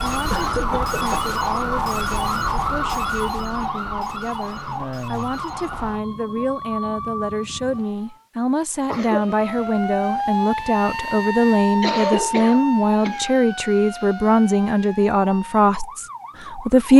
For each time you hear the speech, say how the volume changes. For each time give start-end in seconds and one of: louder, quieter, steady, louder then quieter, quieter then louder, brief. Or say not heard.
0.0-16.9 louder.